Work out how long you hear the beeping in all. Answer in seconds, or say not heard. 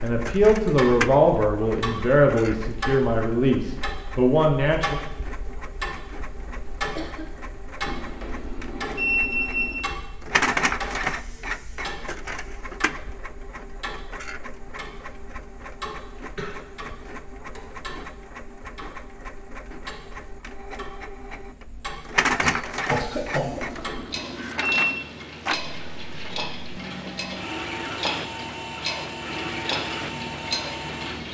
4 s.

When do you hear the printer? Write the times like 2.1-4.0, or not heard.
0.0-31.2.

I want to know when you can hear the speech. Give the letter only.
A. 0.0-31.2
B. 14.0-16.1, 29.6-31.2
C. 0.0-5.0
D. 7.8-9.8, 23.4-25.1
C.